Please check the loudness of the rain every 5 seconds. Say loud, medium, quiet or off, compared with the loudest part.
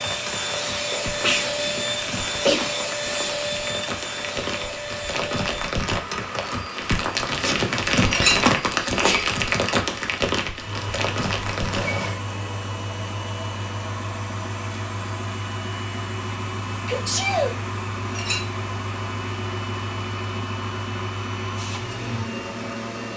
medium, loud, loud, off, off.